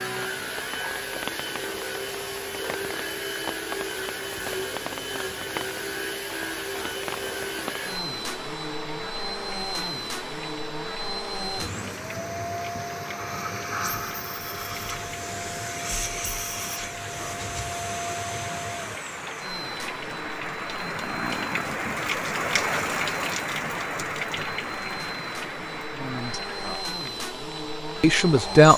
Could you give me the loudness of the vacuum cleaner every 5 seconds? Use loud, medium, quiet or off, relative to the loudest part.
loud, loud, loud, loud, medium, loud.